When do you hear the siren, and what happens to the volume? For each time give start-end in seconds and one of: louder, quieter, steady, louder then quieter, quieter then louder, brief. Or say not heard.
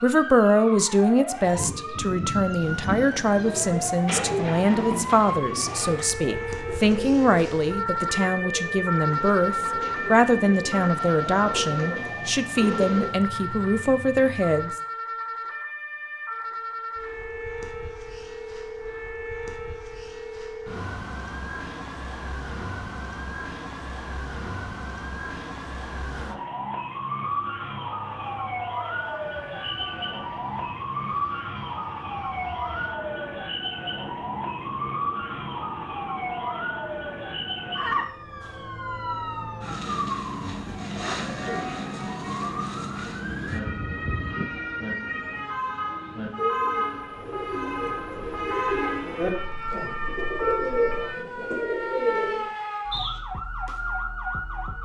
0.0-54.7 steady.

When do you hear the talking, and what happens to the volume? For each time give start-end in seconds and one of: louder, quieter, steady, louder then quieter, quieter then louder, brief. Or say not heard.
0.0-14.8 steady.